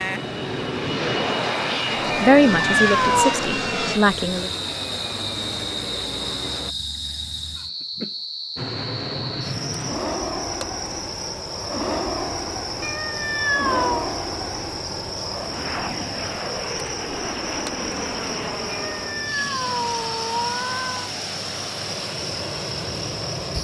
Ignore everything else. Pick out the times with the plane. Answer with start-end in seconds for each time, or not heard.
0.0-6.8, 8.6-23.5.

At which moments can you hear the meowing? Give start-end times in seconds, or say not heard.
2.1-3.4, 12.8-14.1, 18.6-21.1.